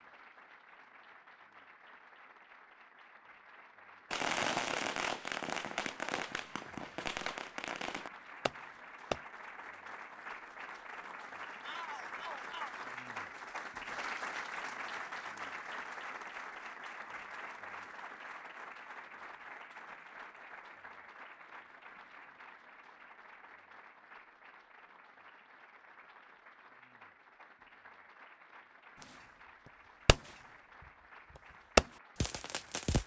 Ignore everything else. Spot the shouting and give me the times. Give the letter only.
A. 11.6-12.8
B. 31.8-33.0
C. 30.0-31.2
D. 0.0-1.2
A.